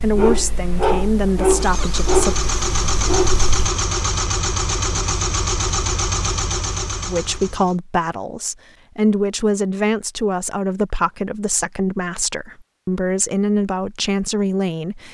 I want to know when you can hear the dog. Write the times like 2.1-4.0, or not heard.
0.0-3.6.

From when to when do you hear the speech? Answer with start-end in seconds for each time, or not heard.
0.0-2.4, 7.0-15.0.